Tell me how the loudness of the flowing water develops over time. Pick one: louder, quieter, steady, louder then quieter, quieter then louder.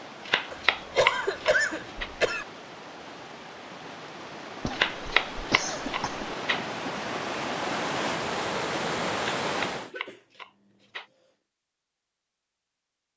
louder.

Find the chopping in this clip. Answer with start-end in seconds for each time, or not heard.
0.2-2.1, 4.7-6.7, 9.4-11.1.